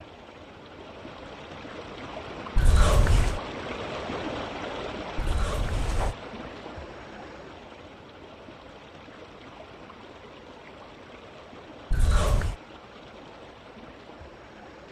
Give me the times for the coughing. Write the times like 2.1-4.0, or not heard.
2.5-3.4, 5.2-6.2, 11.9-12.6.